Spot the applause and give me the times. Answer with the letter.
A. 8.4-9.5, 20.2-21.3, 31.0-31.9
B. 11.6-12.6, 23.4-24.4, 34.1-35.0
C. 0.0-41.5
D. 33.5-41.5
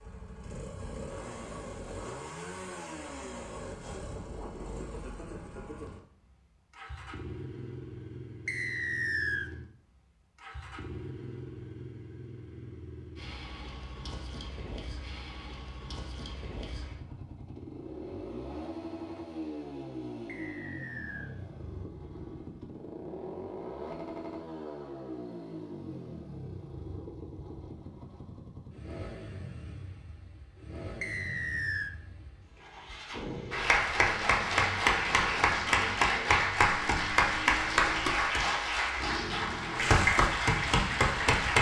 D.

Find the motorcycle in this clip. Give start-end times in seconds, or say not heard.
0.0-41.5.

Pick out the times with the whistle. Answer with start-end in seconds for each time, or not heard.
8.4-9.5, 20.2-21.3, 31.0-31.9.